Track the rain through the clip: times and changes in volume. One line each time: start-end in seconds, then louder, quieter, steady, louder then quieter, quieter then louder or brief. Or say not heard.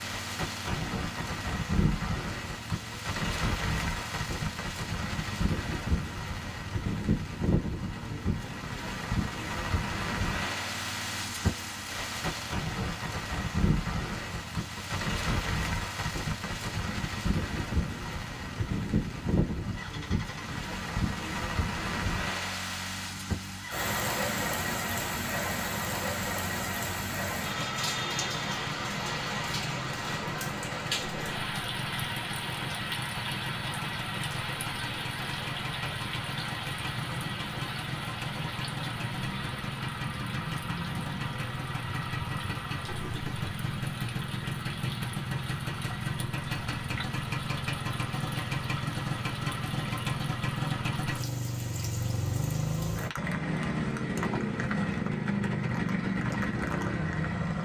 0.0-57.4 quieter.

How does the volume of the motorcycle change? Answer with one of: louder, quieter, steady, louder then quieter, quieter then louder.
louder.